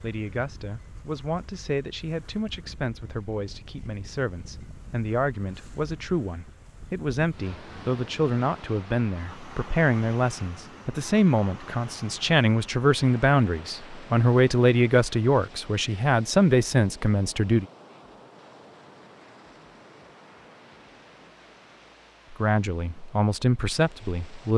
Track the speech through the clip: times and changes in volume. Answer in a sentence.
The speech can be heard from 0.0 to 17.6 s, getting louder; and briefly from 22.3 to 24.5 s.